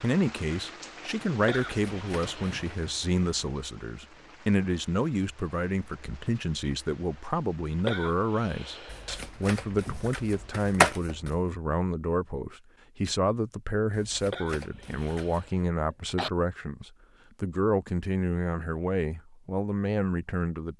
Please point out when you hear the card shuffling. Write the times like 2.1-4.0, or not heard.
1.6-2.8, 8.9-11.4, 13.9-15.5.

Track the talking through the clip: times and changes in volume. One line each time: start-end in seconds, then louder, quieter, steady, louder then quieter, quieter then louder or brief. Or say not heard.
0.0-20.7 steady.